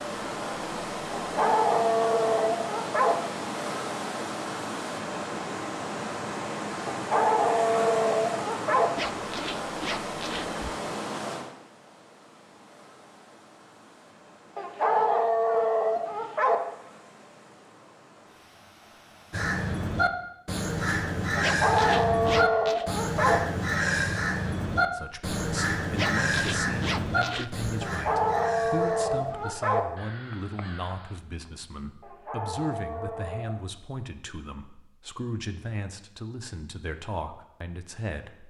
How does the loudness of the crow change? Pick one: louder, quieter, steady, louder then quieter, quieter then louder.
quieter.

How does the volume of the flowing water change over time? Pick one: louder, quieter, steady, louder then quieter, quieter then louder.
quieter.